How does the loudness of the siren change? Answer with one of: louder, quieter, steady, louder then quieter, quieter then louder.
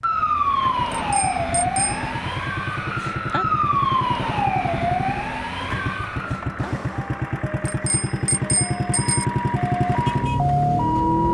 quieter then louder.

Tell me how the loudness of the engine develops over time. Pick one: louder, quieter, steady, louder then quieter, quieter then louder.
louder.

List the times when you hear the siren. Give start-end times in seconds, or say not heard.
0.0-11.2.